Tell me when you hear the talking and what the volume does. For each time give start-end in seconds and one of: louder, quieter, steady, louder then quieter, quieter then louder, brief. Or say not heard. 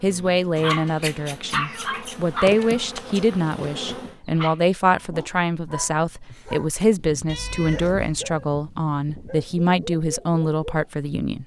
0.0-11.4 steady.